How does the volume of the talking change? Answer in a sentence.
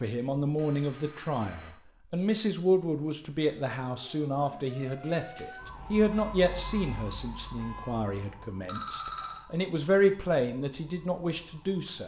The loudness of the talking goes down, then up.